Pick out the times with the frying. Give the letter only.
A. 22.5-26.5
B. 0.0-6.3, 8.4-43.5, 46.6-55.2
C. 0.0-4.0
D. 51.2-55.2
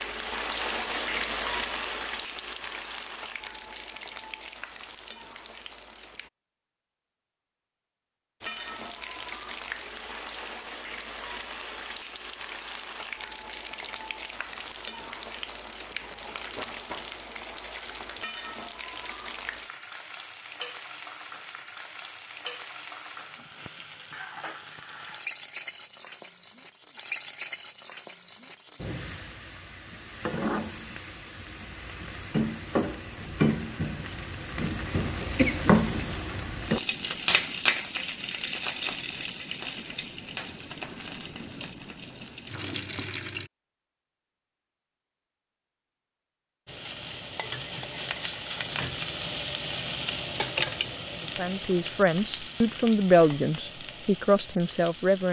B.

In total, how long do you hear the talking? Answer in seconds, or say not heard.
4 s.